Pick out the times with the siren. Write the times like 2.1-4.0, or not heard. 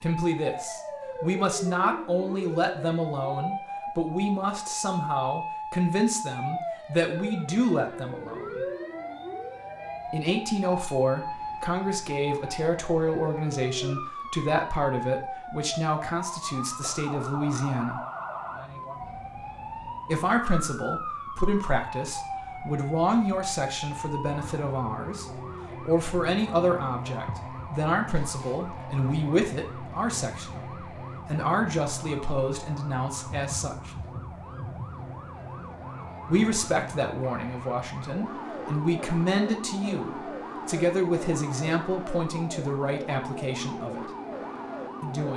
0.0-45.3.